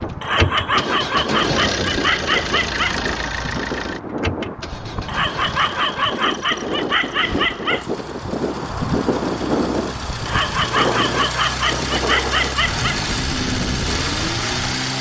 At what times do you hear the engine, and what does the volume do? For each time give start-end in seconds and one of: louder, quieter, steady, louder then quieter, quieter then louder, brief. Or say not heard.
0.0-14.9 quieter then louder.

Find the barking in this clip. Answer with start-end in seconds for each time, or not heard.
0.2-3.0, 5.0-7.8, 10.2-13.0.